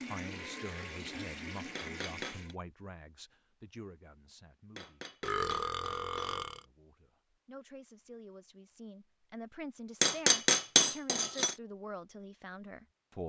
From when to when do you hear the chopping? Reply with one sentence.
The chopping can't be heard in this clip.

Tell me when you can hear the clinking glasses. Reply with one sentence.
The clinking glasses can be heard from 1.8 to 2.5 s, from 4.8 to 6.3 s and from 10.0 to 11.6 s.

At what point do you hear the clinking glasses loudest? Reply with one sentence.
The volume of the clinking glasses peaks at 11 seconds.